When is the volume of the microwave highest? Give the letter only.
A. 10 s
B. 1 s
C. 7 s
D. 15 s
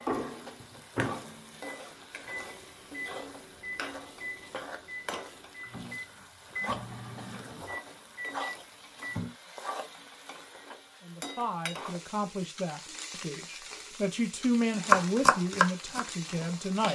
B.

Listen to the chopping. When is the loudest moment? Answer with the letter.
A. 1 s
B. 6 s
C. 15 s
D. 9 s
C.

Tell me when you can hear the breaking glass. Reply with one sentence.
You can't hear the breaking glass here.